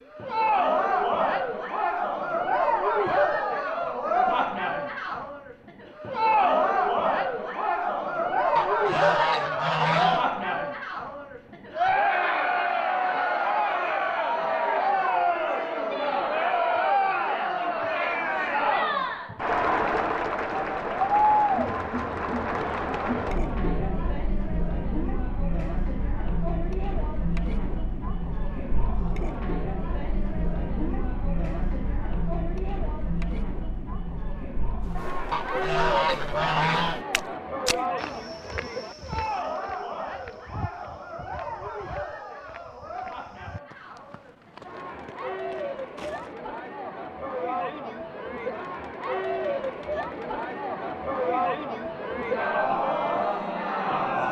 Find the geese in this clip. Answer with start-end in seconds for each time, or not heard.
8.6-10.3, 35.3-37.1.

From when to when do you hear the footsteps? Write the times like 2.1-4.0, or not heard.
34.9-46.4.